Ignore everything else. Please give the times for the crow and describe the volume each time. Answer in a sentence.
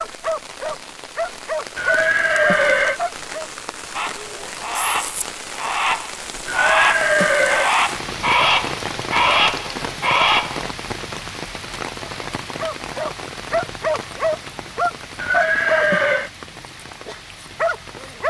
You can hear the crow from 3.9 to 10.7 s, getting louder.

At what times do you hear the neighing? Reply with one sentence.
The neighing can be heard from 1.8 to 3.0 s, from 6.5 to 7.7 s and from 15.2 to 16.3 s.